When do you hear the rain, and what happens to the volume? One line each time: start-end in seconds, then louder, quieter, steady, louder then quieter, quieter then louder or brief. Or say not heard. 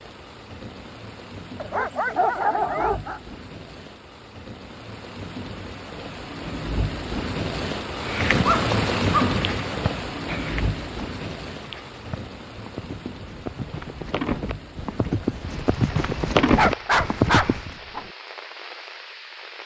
0.0-19.6 louder then quieter.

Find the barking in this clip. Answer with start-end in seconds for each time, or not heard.
1.6-3.2, 8.4-9.3, 16.6-18.1.